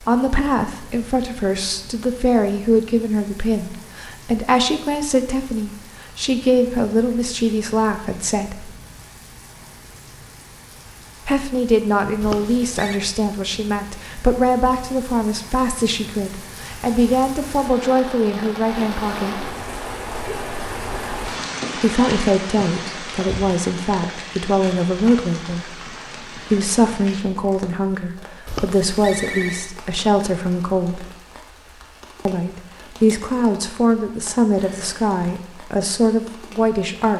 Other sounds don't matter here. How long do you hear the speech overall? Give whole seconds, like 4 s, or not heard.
31 s.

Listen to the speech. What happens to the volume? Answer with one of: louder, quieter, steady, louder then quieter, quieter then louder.
steady.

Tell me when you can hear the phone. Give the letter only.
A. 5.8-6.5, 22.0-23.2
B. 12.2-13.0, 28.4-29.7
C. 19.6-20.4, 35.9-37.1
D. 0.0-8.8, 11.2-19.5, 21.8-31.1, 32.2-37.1
B.